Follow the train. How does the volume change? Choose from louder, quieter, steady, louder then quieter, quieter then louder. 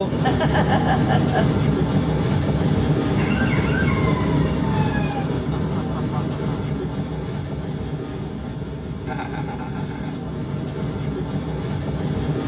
quieter.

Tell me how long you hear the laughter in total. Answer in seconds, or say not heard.
4 s.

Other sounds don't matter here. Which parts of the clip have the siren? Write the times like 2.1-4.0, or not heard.
3.1-5.2.